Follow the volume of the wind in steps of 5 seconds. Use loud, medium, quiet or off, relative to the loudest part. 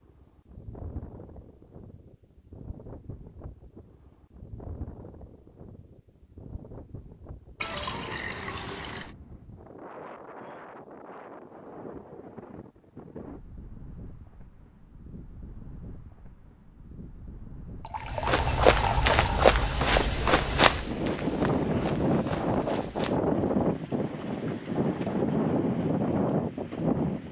quiet, quiet, quiet, quiet, loud, loud.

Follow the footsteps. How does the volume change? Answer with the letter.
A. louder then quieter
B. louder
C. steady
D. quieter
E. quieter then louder
D.